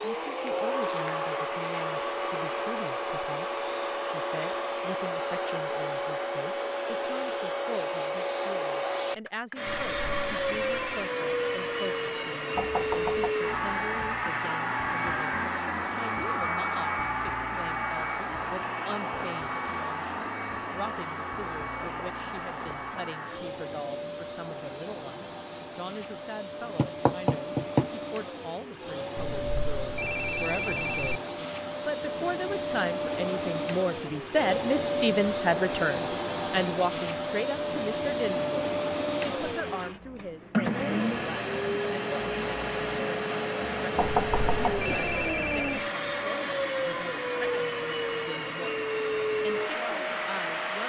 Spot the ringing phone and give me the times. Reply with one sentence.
The ringing phone can be heard from 9.7 to 11.1 s, from 29.1 to 31.1 s and from 44.0 to 45.9 s.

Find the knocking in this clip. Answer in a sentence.
You can hear the knocking from 12.6 to 13.3 s, from 26.8 to 27.9 s and from 44.0 to 45.0 s.